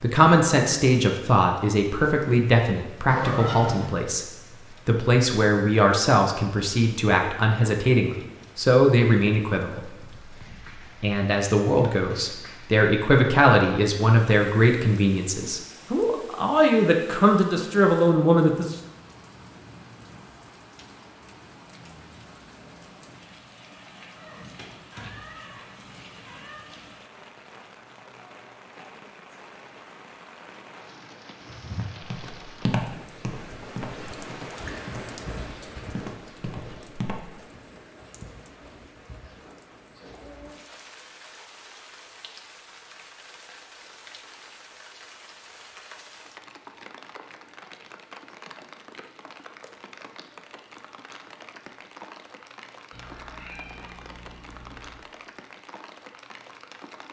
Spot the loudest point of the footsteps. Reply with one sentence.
The volume of the footsteps peaks at 33 seconds.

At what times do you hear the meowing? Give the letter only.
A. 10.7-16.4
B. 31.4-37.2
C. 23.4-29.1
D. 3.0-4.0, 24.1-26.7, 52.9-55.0
D.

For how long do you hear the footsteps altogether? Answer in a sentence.
You can hear the footsteps for 6 seconds altogether.